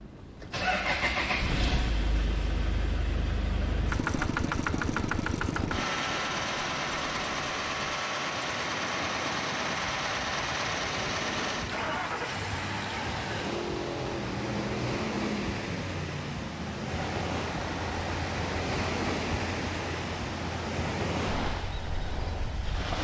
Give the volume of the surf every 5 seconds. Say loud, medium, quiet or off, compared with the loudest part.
medium, medium, loud, loud, loud.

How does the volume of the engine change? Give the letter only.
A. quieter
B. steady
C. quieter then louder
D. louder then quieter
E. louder
A.